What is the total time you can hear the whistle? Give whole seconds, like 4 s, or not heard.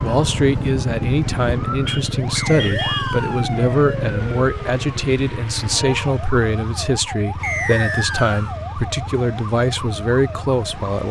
2 s.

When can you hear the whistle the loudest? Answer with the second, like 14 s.
8 s.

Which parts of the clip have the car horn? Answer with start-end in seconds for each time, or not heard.
1.9-3.2.